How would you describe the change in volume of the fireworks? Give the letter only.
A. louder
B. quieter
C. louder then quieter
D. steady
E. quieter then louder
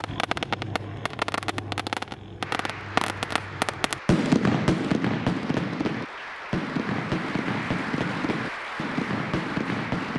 C.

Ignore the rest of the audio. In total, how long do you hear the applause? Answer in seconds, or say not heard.
8 s.